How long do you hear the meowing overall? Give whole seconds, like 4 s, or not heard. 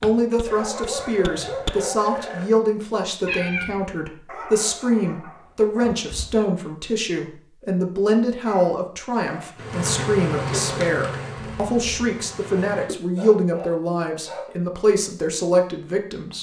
2 s.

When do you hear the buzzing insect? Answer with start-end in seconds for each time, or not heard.
9.6-12.9.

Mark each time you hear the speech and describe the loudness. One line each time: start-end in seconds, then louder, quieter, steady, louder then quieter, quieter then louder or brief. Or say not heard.
0.0-16.3 steady.